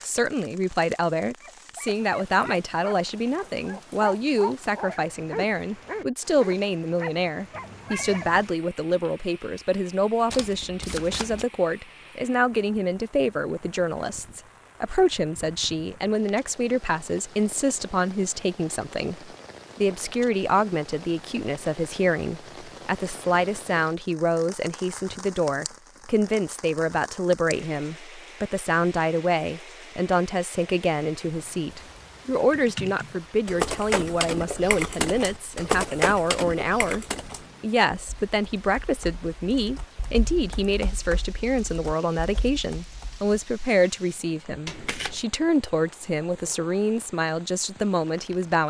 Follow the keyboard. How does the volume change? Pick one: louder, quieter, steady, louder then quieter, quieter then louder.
quieter.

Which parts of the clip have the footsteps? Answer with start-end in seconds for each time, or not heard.
not heard.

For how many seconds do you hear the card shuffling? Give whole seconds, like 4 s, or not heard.
2 s.